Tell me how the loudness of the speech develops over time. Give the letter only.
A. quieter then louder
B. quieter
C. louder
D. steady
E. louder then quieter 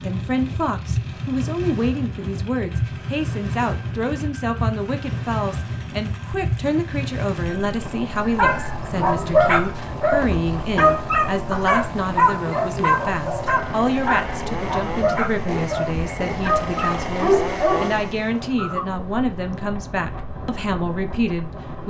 D.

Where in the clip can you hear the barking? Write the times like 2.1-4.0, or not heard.
8.2-18.9.